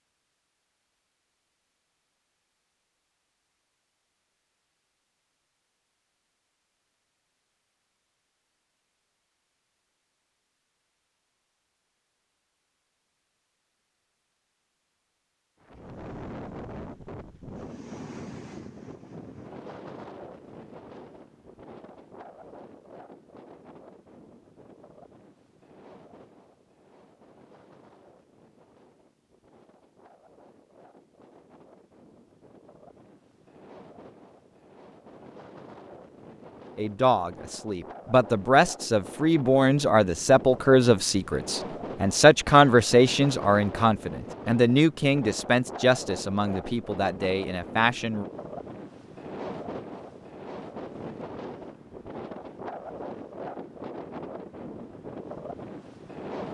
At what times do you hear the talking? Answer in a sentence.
The talking can be heard from 36.8 to 48.2 s.